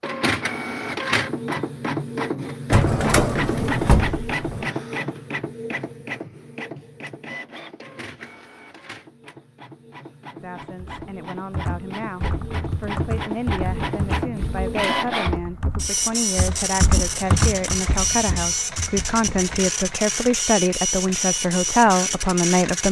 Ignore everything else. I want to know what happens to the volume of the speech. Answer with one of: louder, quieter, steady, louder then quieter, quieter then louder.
louder.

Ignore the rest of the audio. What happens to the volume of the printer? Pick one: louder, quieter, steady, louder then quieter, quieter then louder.
quieter then louder.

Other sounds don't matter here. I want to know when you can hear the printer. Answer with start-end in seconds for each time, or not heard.
0.0-22.8.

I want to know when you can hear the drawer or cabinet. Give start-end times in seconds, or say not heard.
2.7-4.7.